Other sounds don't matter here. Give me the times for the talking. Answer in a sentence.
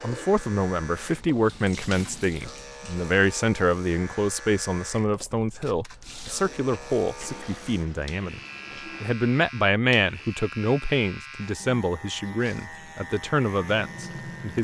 The talking can be heard from 0.0 to 14.5 s.